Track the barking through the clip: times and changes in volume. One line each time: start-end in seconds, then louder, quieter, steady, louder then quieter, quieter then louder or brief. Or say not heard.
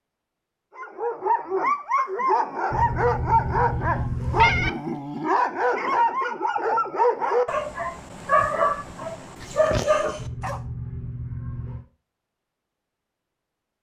0.8-10.6 steady.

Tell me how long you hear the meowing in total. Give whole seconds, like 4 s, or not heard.
4 s.